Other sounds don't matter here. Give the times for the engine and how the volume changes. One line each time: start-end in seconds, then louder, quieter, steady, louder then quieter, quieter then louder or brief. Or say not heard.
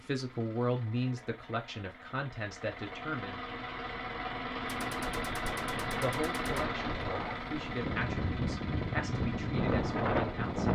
0.0-10.7 louder then quieter.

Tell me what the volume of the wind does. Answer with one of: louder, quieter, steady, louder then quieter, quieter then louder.
louder.